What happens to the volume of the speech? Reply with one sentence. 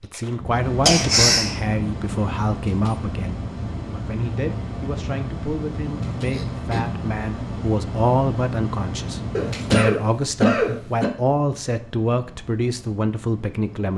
The loudness of the speech goes down, then up.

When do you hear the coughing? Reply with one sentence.
The coughing can be heard from 0.8 to 1.6 s, from 6.2 to 6.8 s and from 9.3 to 11.1 s.